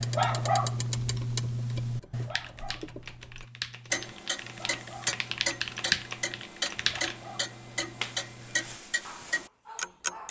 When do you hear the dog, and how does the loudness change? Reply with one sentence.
The dog can be heard from 0.0 to 10.2 s, getting quieter.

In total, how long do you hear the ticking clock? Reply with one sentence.
The ticking clock can be heard for 10 seconds in total.